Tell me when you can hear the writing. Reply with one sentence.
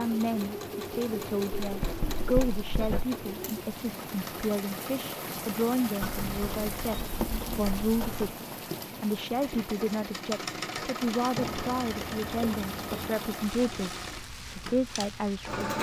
You can hear the writing from 1.6 to 3.1 s, from 6.0 to 8.3 s and from 11.3 to 13.2 s.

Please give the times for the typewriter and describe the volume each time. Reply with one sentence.
The typewriter can't be heard in this clip.